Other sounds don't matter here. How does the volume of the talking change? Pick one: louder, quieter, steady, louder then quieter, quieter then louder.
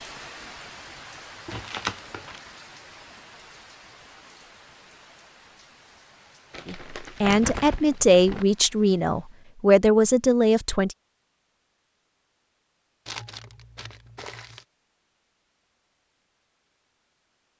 steady.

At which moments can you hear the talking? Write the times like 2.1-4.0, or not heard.
6.7-10.9.